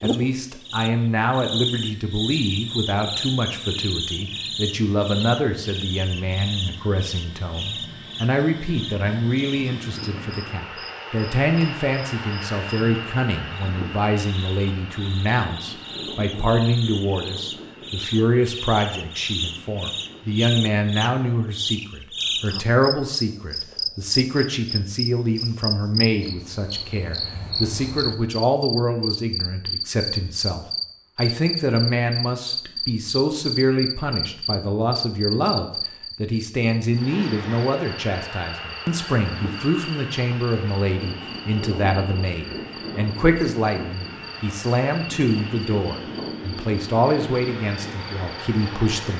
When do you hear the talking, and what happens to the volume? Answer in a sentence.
You can hear the talking from 0.0 to 49.1 s, at a steady volume.